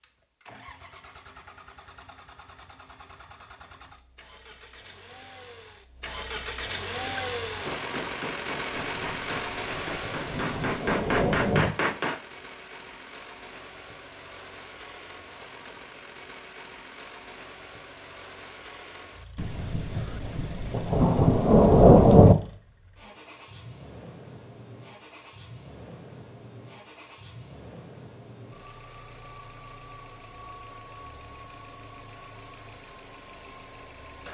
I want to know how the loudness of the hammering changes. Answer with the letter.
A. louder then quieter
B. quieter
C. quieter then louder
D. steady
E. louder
E.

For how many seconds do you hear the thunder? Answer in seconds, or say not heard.
6 s.